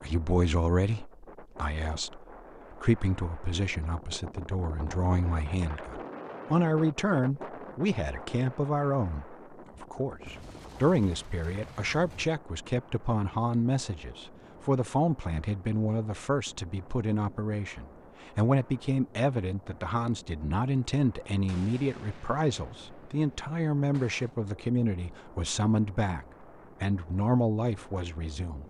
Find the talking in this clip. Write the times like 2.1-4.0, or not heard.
0.0-28.6.